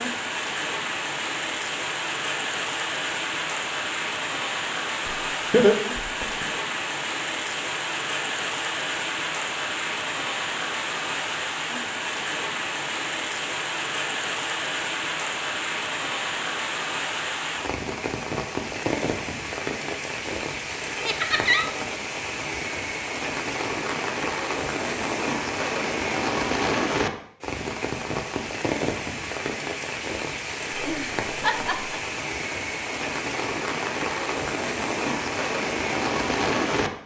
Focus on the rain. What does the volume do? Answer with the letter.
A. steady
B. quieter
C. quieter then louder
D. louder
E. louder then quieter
A.